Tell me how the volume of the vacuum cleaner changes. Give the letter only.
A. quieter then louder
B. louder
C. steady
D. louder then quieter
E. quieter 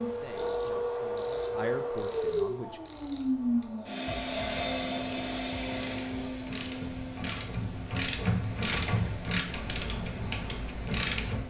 E.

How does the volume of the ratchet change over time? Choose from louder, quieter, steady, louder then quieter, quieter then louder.
louder.